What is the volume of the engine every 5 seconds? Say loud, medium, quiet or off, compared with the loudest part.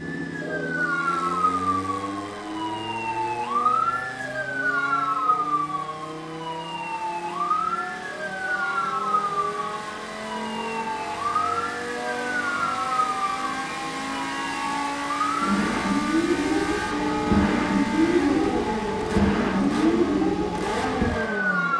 medium, medium, loud, loud, loud.